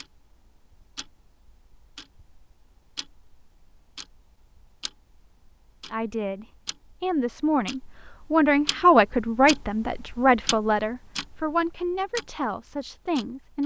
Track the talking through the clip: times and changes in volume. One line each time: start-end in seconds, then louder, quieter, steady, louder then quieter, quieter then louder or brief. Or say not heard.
5.9-13.6 louder then quieter.